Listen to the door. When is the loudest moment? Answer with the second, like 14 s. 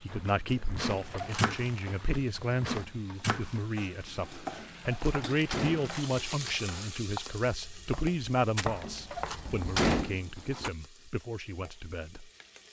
10 s.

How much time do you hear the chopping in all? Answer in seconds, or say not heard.
10 s.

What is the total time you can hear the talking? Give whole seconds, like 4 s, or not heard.
12 s.